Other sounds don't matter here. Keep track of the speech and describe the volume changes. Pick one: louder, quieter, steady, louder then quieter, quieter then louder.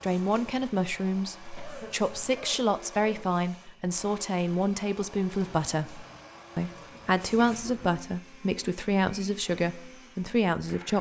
steady.